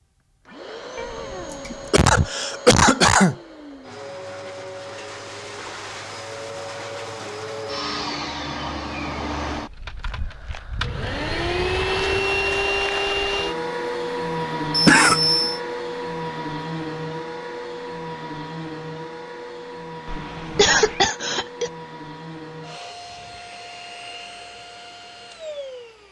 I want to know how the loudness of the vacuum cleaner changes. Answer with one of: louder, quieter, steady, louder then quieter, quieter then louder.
louder then quieter.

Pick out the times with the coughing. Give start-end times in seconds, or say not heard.
1.6-3.4, 14.7-15.6, 20.6-21.7.